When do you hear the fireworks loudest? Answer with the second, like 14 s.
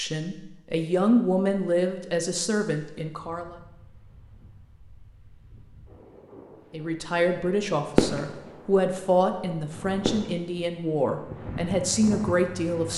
8 s.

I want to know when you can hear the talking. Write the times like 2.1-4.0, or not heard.
0.0-3.5, 6.7-12.9.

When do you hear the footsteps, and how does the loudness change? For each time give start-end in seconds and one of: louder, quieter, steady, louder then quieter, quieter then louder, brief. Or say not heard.
not heard.